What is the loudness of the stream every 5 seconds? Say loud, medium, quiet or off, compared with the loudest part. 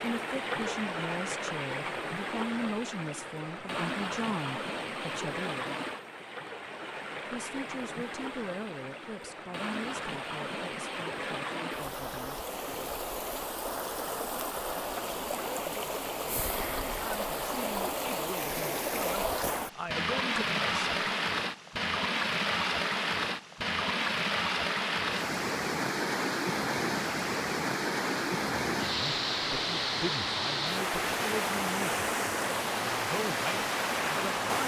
medium, medium, medium, loud, loud, loud, loud.